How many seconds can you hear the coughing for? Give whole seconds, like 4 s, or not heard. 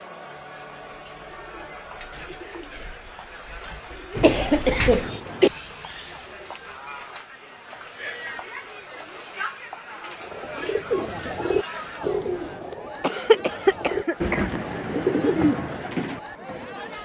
3 s.